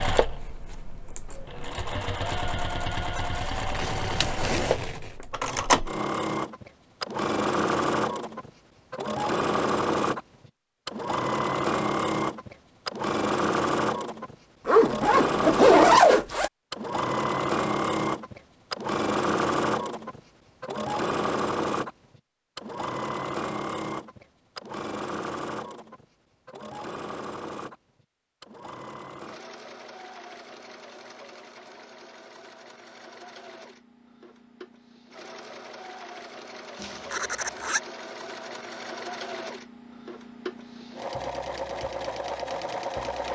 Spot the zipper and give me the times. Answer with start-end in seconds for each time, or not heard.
3.3-5.1, 14.7-16.5, 36.8-37.8.